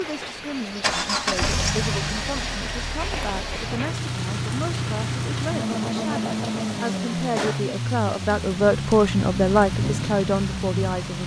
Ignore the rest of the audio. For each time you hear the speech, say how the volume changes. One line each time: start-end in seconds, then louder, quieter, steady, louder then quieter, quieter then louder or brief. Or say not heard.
0.0-11.2 louder.